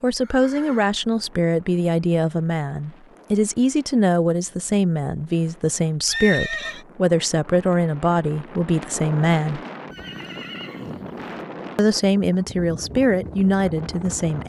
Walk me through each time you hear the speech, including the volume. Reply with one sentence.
You can hear the speech from 0.0 to 9.6 s, at a steady volume; and briefly from 11.8 to 14.4 s.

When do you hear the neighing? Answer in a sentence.
The neighing can be heard from 0.2 to 0.9 s, from 6.0 to 6.8 s and from 9.9 to 11.2 s.